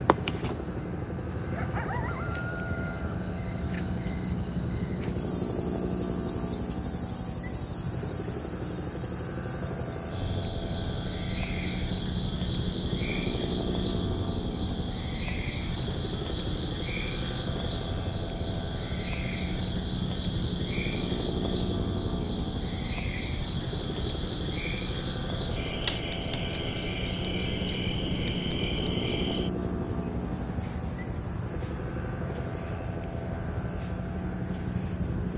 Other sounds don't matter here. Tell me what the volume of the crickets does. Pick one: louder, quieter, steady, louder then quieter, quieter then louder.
steady.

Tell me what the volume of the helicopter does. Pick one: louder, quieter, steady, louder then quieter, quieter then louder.
steady.